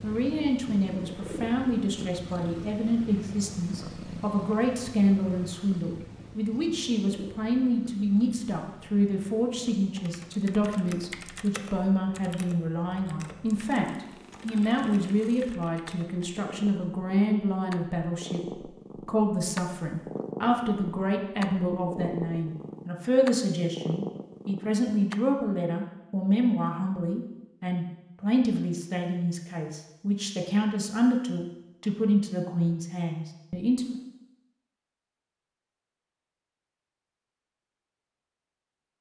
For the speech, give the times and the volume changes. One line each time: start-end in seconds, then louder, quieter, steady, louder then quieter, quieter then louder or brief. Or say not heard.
0.0-34.0 steady.